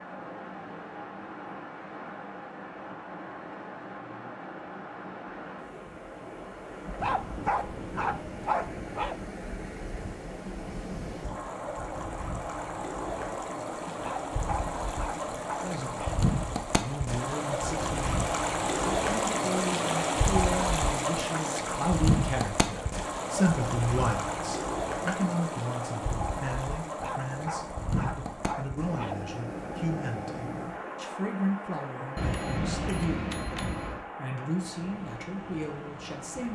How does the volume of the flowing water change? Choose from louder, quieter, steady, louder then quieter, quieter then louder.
louder then quieter.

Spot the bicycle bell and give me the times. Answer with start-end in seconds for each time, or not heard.
32.1-34.0.